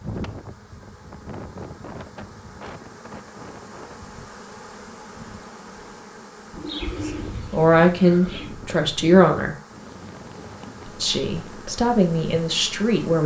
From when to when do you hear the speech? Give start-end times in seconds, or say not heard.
7.0-9.6, 10.8-13.2.